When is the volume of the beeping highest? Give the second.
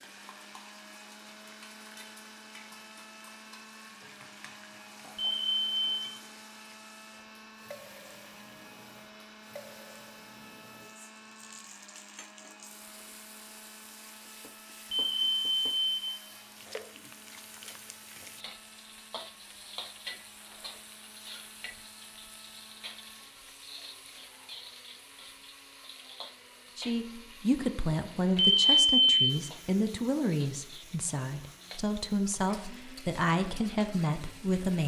29 s.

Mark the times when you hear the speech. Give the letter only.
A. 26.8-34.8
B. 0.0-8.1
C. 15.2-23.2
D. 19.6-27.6
A.